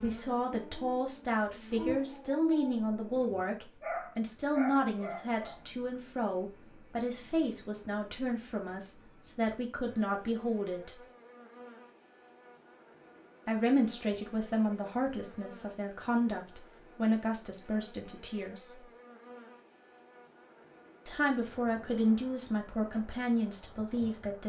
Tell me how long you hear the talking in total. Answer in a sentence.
The talking can be heard for 20 seconds in total.